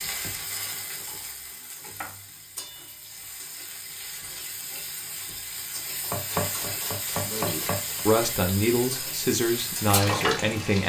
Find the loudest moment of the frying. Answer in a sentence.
The volume of the frying peaks at 10 seconds.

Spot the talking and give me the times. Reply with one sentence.
You can hear the talking from 7.2 to 10.8 s.